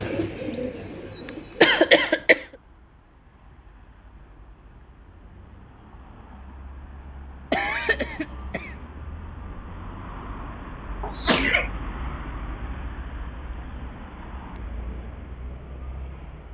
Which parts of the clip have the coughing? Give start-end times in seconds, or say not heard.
1.6-2.5, 7.5-8.8, 11.0-11.7.